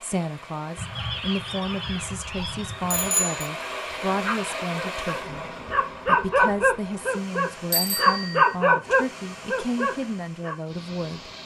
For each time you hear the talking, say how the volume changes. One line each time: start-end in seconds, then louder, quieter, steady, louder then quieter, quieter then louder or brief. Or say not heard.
0.0-5.5 steady
6.0-11.3 steady.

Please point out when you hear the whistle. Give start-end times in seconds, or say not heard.
not heard.